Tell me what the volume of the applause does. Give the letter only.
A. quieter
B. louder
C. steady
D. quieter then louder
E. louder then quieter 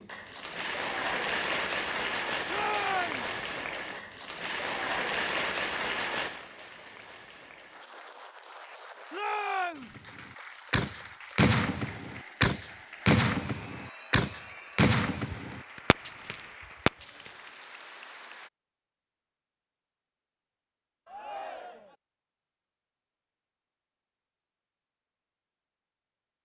A.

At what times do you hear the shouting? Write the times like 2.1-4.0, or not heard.
2.5-3.3, 9.1-9.9, 21.1-21.9.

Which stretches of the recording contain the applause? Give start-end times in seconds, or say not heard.
0.0-18.5.